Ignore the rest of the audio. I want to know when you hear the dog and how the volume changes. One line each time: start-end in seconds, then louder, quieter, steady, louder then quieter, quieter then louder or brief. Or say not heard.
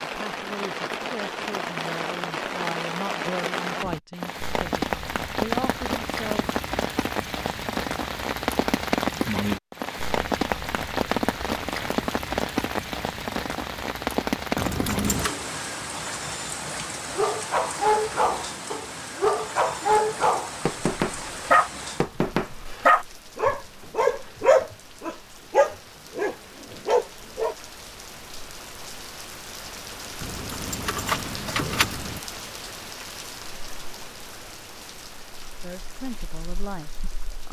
17.1-27.6 steady.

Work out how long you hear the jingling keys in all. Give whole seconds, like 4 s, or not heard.
3 s.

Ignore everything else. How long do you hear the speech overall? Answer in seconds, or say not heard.
8 s.